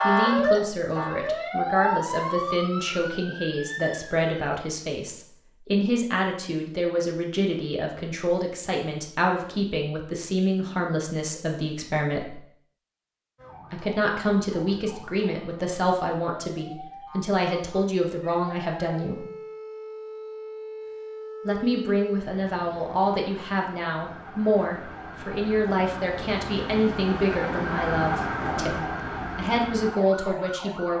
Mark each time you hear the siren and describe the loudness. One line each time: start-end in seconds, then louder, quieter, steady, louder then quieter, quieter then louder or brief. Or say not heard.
0.0-4.6 quieter
13.3-30.9 louder.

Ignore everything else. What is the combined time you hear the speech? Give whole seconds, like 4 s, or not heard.
27 s.